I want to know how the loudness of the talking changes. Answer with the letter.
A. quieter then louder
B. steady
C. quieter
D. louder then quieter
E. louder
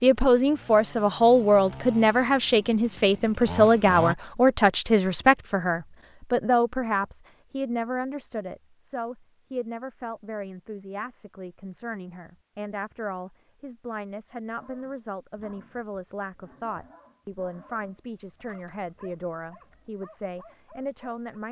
C.